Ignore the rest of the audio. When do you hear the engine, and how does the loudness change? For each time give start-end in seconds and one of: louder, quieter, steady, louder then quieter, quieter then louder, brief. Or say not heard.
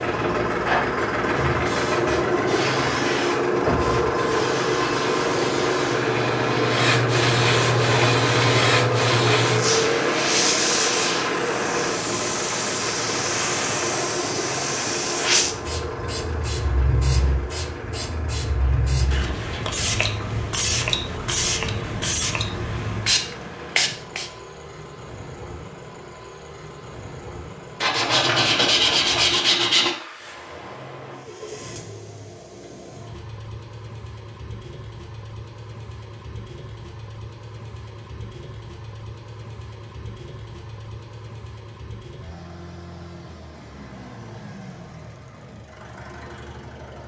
0.0-47.0 quieter.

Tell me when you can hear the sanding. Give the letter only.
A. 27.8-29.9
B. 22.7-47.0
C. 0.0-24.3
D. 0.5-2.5
A.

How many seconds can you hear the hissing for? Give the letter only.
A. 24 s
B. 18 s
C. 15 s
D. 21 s
A.